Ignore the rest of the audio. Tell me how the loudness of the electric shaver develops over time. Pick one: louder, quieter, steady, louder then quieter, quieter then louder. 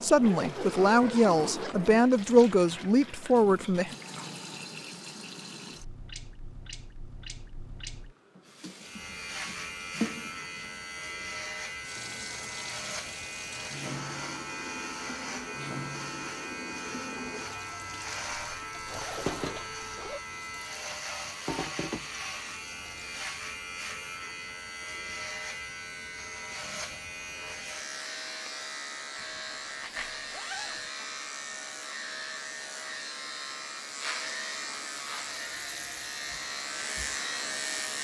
steady.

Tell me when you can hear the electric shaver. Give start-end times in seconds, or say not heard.
8.8-37.9.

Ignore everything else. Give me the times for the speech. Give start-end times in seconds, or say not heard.
0.0-4.0.